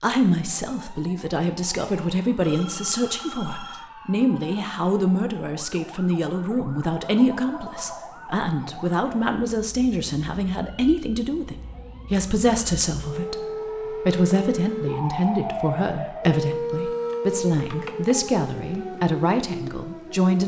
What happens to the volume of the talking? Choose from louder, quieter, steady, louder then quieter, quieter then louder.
steady.